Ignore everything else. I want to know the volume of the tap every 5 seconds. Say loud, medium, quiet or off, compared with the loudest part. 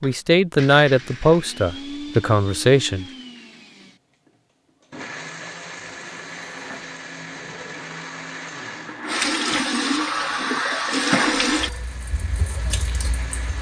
off, loud, loud.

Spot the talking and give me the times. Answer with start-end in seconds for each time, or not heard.
0.0-3.0.